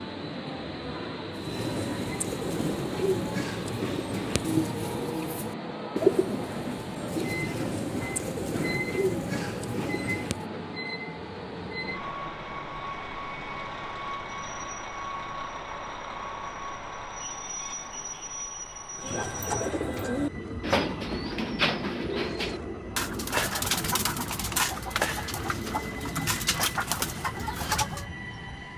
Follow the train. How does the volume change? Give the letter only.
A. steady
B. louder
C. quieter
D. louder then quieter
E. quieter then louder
A.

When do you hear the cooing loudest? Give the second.
6 s.